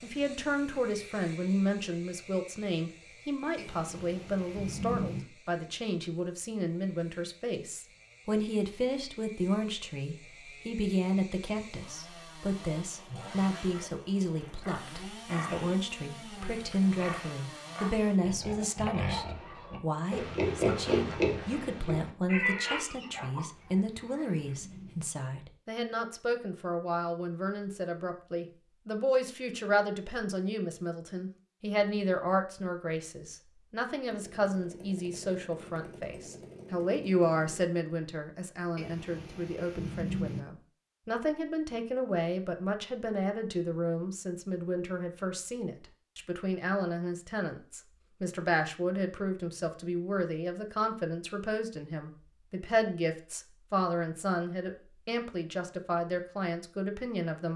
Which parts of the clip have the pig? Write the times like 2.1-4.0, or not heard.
13.1-24.6.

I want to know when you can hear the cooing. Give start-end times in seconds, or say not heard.
not heard.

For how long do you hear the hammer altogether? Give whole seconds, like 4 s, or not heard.
not heard.